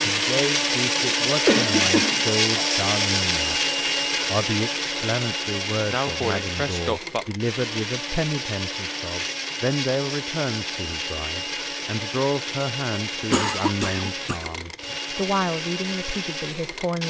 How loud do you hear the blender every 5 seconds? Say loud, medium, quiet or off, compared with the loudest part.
loud, medium, medium, medium.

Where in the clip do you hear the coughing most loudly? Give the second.
2 s.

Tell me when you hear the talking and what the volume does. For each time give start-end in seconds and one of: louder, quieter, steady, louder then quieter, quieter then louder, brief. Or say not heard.
0.0-17.0 steady.